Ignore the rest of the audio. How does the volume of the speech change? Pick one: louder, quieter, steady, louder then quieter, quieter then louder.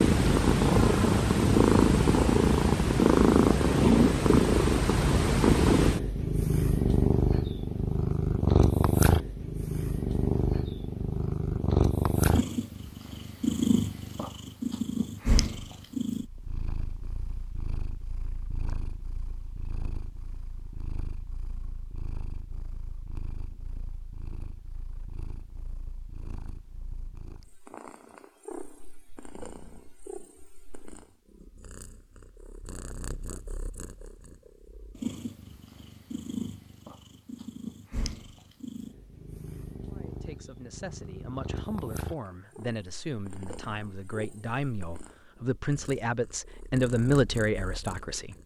louder.